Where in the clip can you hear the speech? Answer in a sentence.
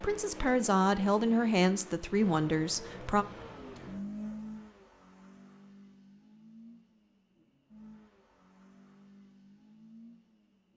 You can hear the speech from 0.0 to 3.2 s.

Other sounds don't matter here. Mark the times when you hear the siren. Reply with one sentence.
You can't hear the siren here.